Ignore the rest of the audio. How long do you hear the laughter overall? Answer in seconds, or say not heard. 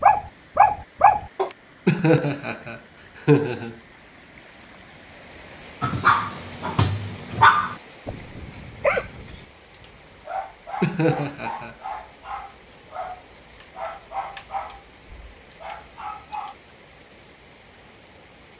3 s.